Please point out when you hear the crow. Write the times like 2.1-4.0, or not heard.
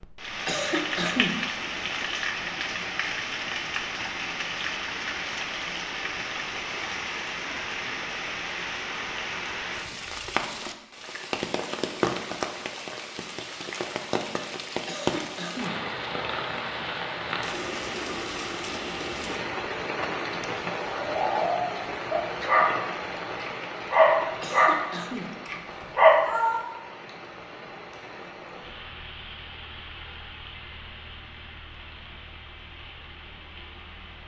not heard.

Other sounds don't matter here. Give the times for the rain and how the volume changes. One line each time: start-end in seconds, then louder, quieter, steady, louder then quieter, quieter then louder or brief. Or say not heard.
0.0-34.2 quieter.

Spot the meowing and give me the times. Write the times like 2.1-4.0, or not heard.
25.8-26.6.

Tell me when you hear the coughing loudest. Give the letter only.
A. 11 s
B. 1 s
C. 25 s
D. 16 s
B.